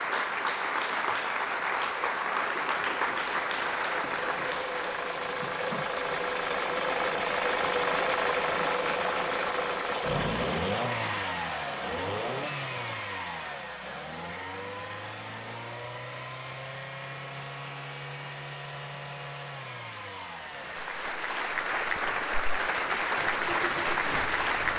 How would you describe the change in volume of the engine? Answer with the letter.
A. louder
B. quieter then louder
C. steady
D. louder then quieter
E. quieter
D.